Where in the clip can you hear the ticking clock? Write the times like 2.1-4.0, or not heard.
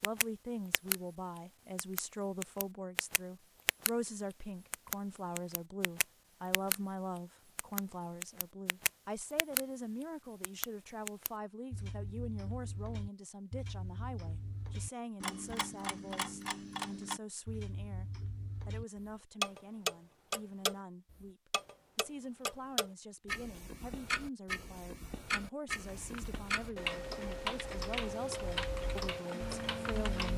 0.0-0.9, 1.8-3.9, 4.7-6.8, 7.5-9.6, 10.4-30.3.